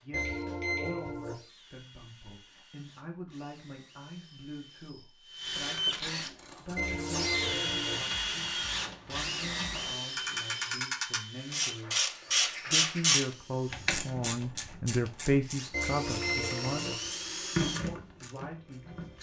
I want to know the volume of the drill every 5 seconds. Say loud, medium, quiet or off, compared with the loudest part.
quiet, loud, medium, loud.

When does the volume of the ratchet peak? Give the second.
13 s.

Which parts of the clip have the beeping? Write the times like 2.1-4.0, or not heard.
0.1-1.4, 6.8-8.0, 15.7-16.9.